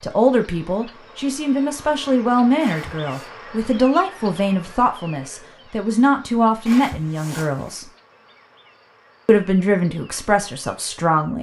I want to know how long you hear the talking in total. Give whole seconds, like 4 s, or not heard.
10 s.